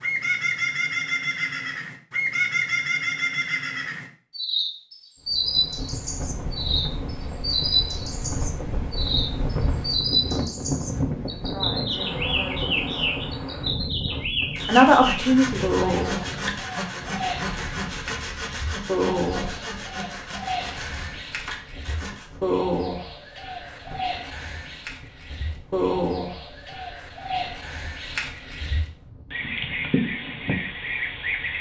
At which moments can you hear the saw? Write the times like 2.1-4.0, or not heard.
14.6-22.4.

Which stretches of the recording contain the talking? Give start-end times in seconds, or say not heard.
11.2-13.2, 14.7-16.1.